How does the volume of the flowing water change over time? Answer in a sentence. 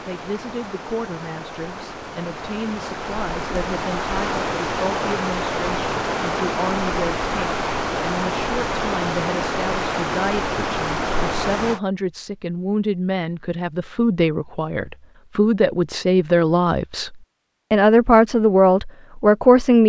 The volume of the flowing water goes up.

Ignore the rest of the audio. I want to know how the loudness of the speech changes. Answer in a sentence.
The loudness of the speech goes up.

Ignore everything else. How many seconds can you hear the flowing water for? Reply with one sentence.
You can hear the flowing water for 12 seconds altogether.